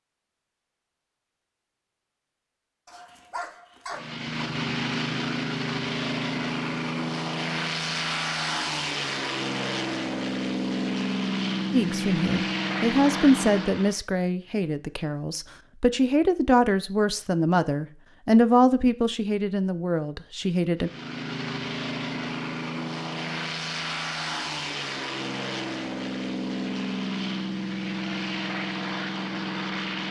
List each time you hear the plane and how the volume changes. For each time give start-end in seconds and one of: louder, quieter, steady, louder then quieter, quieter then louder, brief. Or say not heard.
3.9-14.0 steady
20.8-30.0 steady.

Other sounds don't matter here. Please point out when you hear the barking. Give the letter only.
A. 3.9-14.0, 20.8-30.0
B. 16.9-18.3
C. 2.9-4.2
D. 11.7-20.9
C.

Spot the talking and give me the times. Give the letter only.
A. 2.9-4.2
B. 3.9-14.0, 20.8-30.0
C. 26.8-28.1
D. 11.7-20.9
D.